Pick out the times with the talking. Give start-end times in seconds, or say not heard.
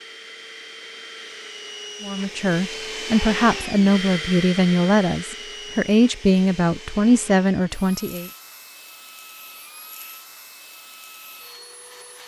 2.0-8.3.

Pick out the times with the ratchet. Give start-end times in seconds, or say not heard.
not heard.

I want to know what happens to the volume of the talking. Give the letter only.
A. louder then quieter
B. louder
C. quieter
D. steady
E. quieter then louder
D.